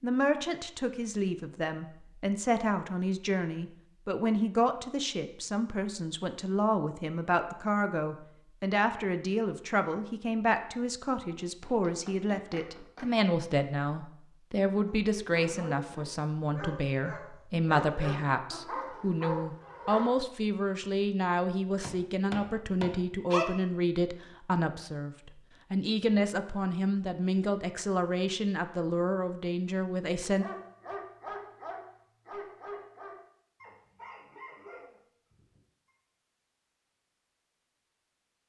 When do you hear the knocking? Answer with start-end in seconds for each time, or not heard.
11.4-13.2, 21.8-23.4.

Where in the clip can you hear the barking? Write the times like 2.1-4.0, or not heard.
15.0-20.2, 30.4-35.9.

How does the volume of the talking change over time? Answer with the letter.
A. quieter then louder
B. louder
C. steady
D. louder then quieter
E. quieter
C.